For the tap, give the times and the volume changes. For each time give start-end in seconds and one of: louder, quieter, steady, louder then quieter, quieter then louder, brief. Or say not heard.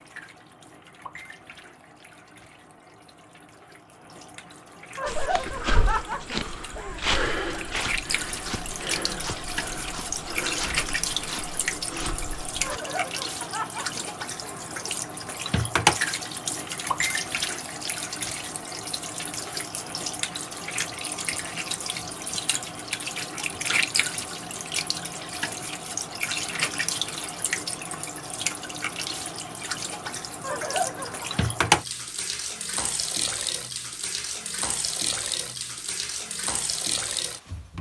0.0-37.7 louder.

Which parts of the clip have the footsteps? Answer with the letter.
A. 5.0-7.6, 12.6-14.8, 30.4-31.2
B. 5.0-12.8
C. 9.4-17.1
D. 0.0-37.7
B.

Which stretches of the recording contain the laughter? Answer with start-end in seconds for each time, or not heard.
5.0-7.6, 12.6-14.8, 30.4-31.2.